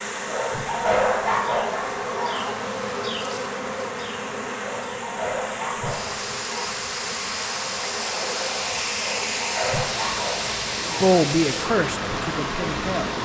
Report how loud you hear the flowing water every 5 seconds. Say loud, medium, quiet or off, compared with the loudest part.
medium, loud, loud.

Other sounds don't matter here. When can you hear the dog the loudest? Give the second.
1 s.